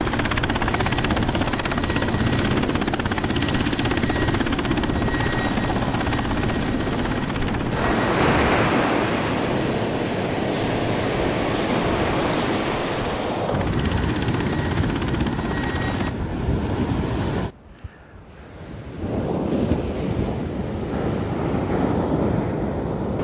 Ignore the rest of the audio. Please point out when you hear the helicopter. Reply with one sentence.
The helicopter can be heard from 0.0 to 16.1 s.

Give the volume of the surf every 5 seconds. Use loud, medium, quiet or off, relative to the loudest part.
medium, loud, loud, loud, loud.